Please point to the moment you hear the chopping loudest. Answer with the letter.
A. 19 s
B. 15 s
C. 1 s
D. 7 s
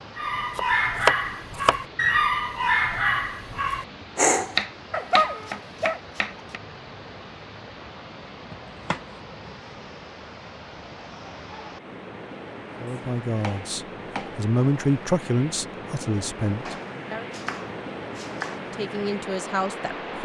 C.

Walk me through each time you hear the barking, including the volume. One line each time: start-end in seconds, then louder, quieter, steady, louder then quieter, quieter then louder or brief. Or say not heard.
0.1-6.0 steady.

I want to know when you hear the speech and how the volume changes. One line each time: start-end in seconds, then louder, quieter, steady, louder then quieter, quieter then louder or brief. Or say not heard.
12.8-17.2 louder then quieter
18.7-20.2 brief.